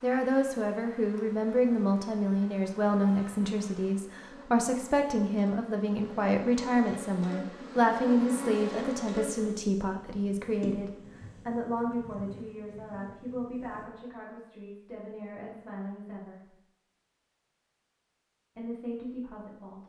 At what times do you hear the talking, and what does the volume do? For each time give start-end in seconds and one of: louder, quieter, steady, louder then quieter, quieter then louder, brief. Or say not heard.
0.0-16.5 quieter
18.6-19.8 brief.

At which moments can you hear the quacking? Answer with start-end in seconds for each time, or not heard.
not heard.